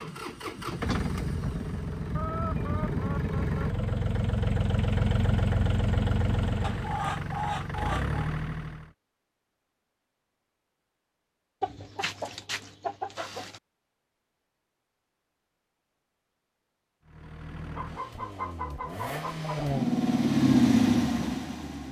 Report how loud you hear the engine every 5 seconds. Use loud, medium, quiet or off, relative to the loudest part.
medium, medium, off, medium, loud.